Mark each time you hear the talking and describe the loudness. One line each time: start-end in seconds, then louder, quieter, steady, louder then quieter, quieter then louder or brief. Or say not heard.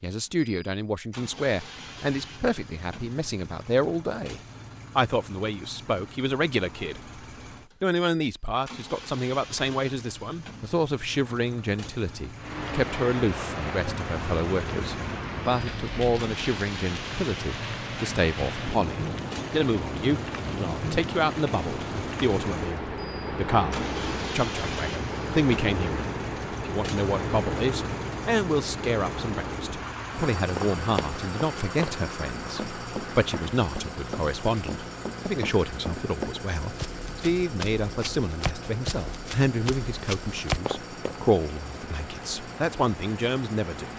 0.0-7.2 steady
7.8-43.9 steady.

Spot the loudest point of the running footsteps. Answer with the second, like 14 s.
41 s.